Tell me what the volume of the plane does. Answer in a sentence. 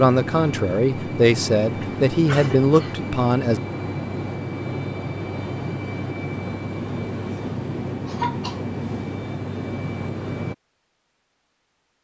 The volume of the plane stays about the same.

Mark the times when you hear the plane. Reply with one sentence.
You can hear the plane from 0.0 to 10.6 s.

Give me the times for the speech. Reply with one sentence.
The speech can be heard from 0.0 to 3.6 s.